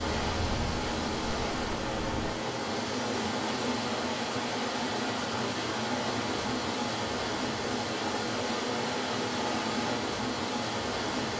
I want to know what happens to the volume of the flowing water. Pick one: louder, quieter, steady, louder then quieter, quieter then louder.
steady.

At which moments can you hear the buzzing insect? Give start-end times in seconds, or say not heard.
0.2-2.4.